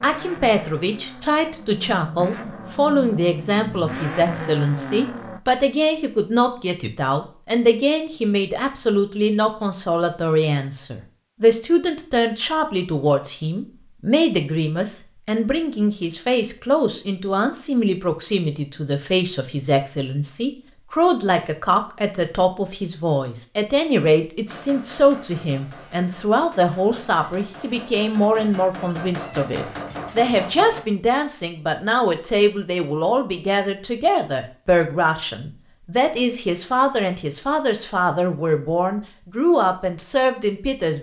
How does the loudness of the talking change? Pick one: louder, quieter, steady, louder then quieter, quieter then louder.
steady.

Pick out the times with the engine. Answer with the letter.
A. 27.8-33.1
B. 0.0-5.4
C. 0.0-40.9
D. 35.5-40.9
B.